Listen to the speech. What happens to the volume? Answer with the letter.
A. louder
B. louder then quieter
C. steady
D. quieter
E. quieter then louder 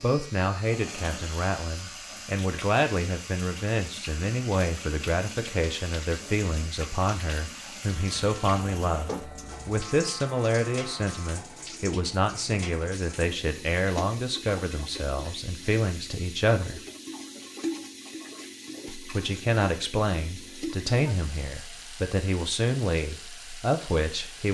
C.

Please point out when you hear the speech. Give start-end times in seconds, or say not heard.
0.0-16.8, 18.9-24.5.